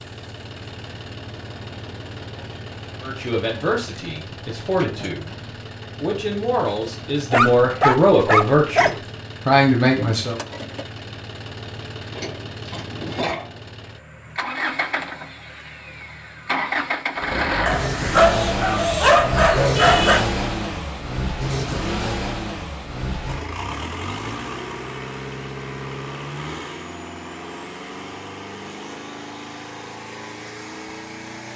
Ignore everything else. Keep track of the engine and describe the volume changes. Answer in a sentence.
The volume of the engine goes up, then down.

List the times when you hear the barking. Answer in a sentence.
The barking can be heard from 7.3 to 8.9 s and from 17.6 to 20.2 s.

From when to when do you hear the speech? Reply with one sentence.
The speech can be heard from 3.0 to 5.3 s and from 6.0 to 10.4 s.